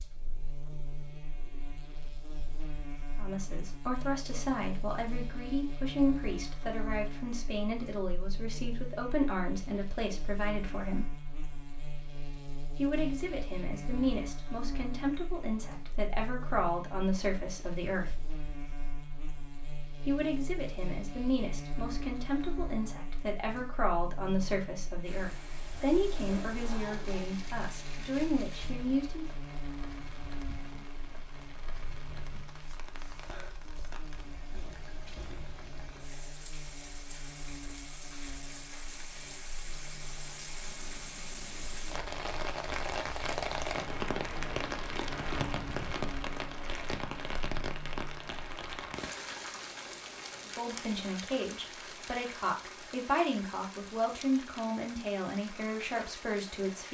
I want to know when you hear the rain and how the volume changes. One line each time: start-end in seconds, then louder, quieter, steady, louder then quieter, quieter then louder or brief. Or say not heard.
25.0-56.9 louder then quieter.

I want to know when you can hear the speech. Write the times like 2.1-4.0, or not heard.
3.1-11.1, 12.8-18.1, 20.1-29.2, 50.5-56.9.